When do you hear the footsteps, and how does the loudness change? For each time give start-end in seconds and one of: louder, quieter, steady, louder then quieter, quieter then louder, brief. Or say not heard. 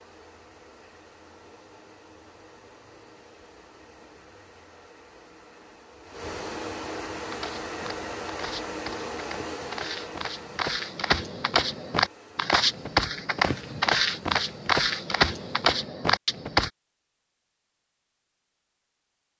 7.1-16.7 louder.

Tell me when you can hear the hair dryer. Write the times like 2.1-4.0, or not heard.
0.0-15.7.